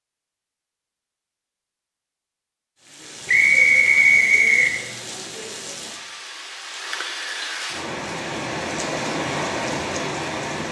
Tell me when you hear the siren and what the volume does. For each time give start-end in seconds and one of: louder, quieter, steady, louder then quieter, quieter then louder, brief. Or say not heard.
not heard.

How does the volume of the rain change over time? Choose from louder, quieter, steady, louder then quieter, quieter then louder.
louder.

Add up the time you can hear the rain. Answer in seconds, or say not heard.
8 s.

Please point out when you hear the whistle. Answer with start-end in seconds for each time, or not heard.
3.2-4.8.